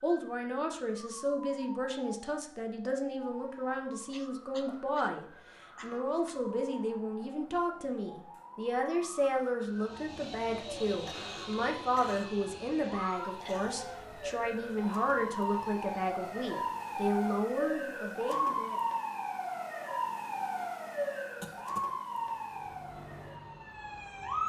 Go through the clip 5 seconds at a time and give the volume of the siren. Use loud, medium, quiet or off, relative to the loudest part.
quiet, quiet, medium, loud, loud.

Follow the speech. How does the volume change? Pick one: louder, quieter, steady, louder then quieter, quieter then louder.
steady.